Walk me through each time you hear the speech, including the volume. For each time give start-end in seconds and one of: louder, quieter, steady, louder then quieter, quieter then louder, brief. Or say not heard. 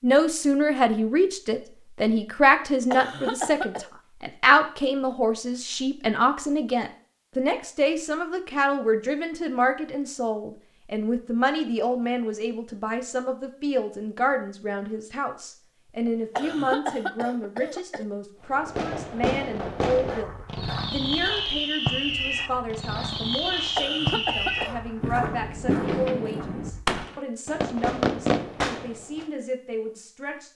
0.0-30.5 quieter.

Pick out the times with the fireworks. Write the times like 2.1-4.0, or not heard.
18.6-29.2.